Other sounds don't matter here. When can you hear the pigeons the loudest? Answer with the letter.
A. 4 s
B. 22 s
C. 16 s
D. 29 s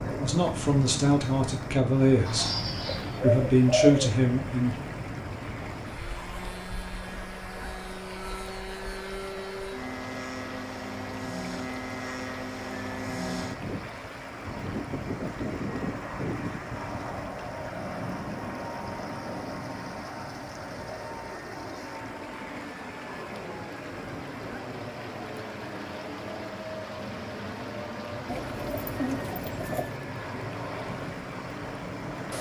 A.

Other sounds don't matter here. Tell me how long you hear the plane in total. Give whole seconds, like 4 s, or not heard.
32 s.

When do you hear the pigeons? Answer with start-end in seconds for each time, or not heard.
2.2-4.2, 28.2-29.9.